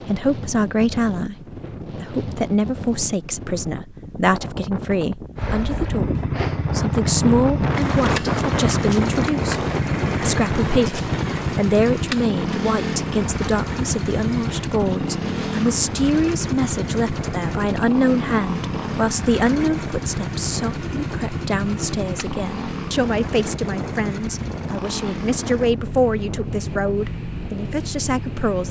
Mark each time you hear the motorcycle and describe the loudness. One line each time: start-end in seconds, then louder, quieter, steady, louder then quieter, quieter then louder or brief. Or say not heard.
5.3-28.6 quieter.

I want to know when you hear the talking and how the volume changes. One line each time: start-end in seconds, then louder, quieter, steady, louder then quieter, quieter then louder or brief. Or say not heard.
0.1-28.6 steady.